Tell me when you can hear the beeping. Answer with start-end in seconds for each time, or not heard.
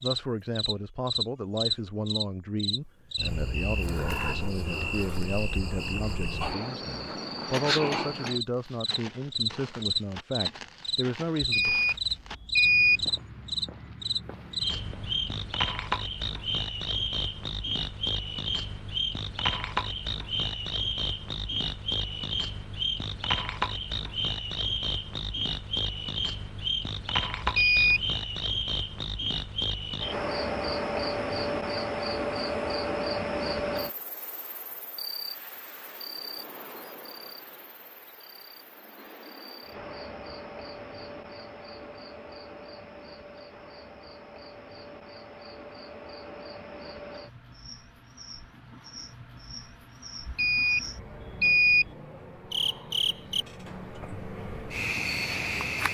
11.4-13.1, 27.4-28.1, 50.2-51.9.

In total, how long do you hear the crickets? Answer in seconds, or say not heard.
56 s.